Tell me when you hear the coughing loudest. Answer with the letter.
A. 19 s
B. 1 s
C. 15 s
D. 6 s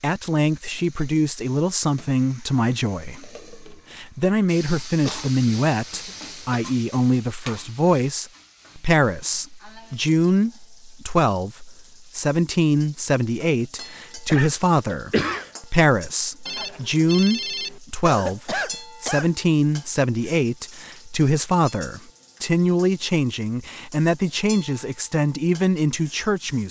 C.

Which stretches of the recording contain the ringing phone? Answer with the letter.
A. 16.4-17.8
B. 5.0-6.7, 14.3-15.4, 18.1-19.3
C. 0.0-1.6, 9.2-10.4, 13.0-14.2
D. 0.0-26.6
A.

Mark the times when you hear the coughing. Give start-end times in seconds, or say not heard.
5.0-6.7, 14.3-15.4, 18.1-19.3.